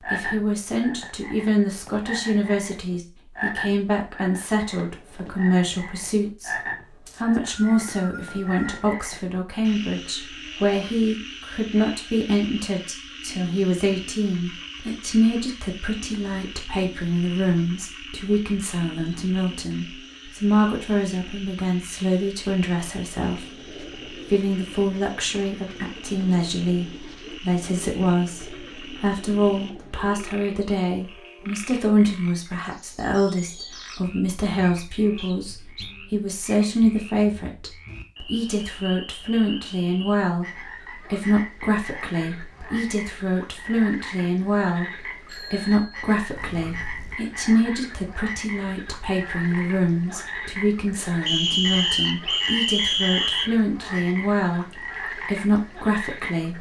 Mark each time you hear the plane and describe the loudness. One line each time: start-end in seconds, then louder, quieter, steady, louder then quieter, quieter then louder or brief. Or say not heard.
not heard.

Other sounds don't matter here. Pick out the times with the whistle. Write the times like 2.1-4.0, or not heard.
7.0-8.8, 35.1-36.0, 51.2-53.5.